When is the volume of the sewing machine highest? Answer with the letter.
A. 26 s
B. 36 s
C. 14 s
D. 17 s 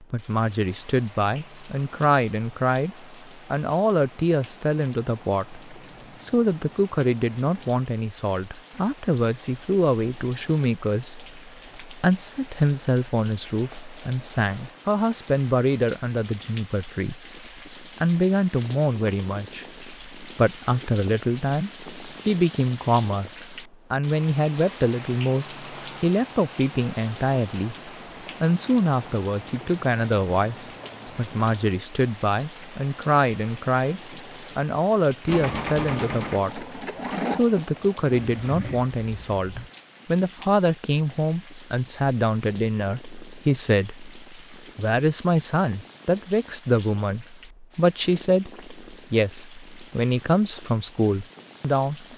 B.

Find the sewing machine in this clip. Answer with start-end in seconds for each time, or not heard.
35.2-39.7.